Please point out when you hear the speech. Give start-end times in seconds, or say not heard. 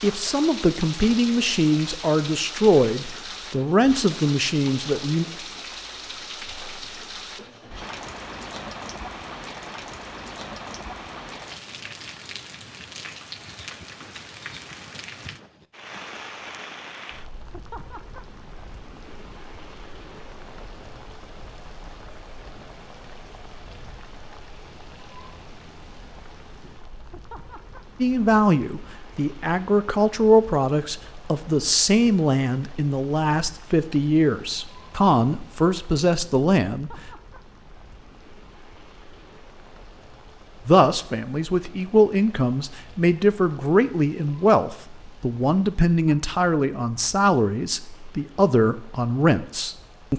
0.0-5.2, 28.0-37.0, 40.6-50.1.